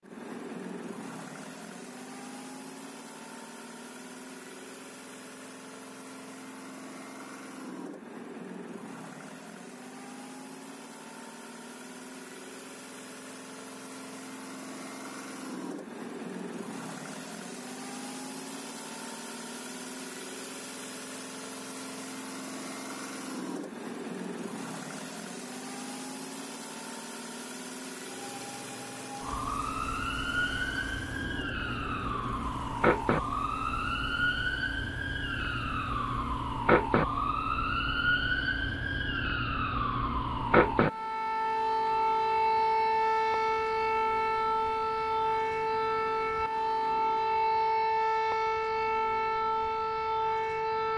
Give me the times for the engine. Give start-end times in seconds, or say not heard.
0.0-47.4.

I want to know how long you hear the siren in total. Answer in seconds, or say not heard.
23 s.